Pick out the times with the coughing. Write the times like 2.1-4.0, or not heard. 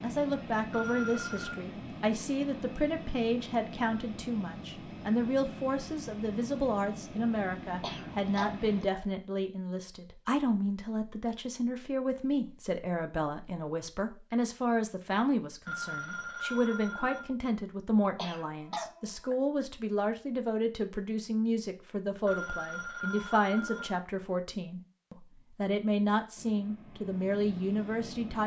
7.8-9.1, 18.1-19.4.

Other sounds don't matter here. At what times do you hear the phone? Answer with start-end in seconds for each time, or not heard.
0.7-1.6, 15.7-17.3, 22.2-24.0.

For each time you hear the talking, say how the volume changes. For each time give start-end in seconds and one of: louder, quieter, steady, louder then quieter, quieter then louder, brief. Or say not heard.
0.0-28.4 steady.